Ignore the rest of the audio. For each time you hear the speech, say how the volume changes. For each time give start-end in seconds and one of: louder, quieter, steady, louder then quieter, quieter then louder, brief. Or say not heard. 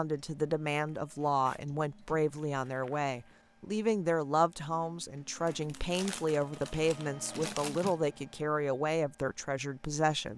0.0-10.3 steady.